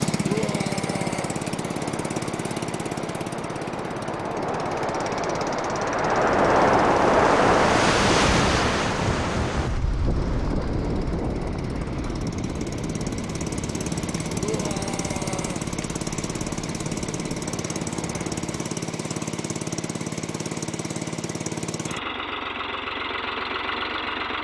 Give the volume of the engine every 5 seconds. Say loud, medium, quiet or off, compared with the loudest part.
loud, medium, loud, loud, loud.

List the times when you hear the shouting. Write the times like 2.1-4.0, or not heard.
0.2-1.4, 14.3-15.7.